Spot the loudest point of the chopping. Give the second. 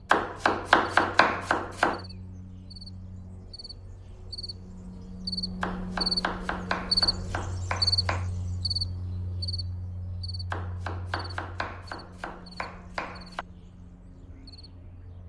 1 s.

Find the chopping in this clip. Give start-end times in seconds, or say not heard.
0.1-2.0, 5.6-8.3, 10.5-13.4.